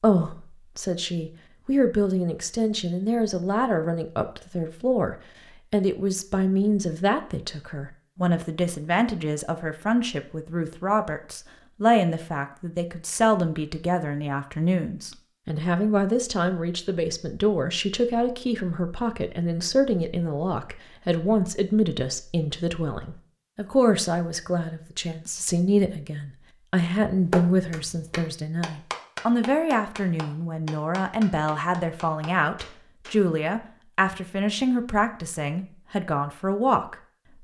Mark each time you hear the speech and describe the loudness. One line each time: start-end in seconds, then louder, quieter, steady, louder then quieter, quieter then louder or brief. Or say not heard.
0.0-37.0 steady.